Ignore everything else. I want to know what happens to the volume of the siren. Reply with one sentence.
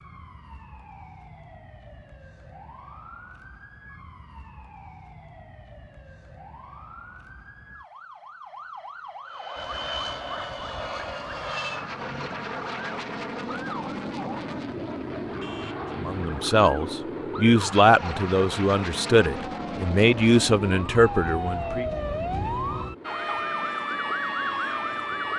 The loudness of the siren goes up.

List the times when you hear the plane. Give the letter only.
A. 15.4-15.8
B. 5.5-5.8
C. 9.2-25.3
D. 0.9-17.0
C.